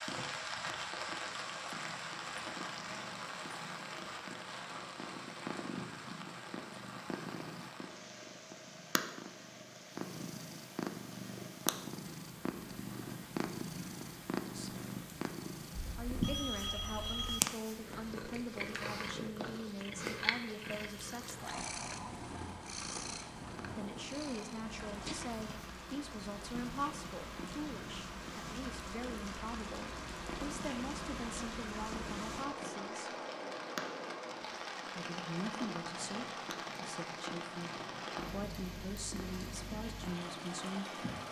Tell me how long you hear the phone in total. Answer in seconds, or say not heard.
2 s.